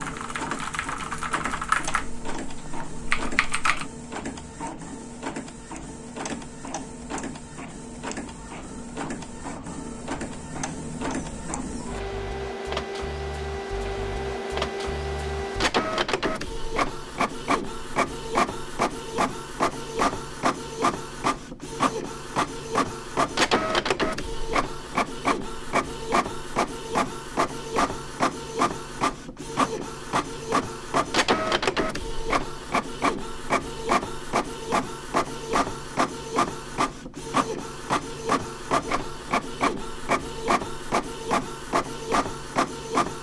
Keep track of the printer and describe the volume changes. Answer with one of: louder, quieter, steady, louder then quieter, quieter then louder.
louder.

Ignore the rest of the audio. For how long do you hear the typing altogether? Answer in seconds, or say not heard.
4 s.